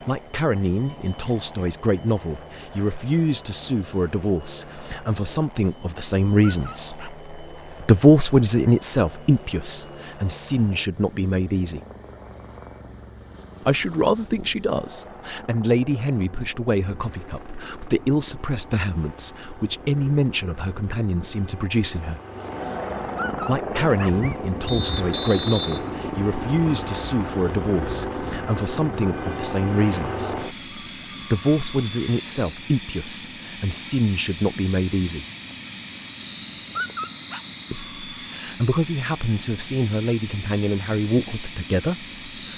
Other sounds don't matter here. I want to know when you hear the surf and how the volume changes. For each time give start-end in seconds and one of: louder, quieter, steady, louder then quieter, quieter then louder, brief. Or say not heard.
not heard.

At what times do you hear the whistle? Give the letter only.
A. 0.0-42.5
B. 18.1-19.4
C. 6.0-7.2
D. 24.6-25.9
D.